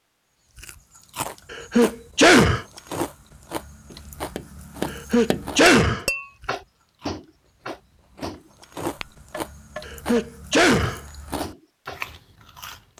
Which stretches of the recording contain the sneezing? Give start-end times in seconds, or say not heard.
1.5-2.6, 4.9-6.0, 9.8-11.0.